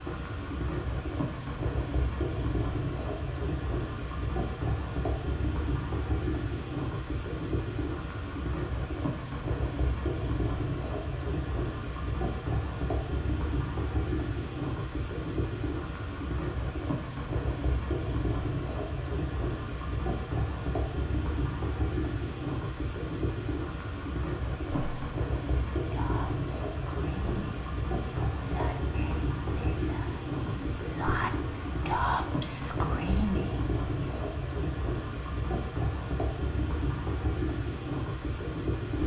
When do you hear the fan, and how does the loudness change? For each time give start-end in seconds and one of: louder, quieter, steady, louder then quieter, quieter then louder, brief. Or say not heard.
0.0-39.0 steady.